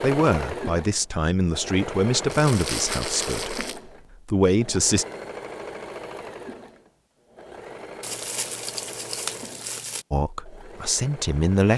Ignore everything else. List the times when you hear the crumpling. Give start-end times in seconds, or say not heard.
2.2-3.8, 8.0-10.1.